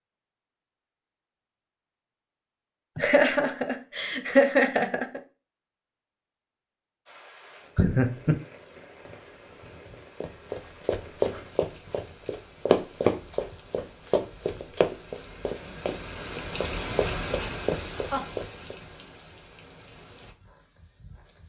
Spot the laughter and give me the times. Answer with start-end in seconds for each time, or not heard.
3.0-5.2, 7.8-8.3, 17.4-18.2.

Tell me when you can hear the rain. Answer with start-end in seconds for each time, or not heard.
7.0-21.4.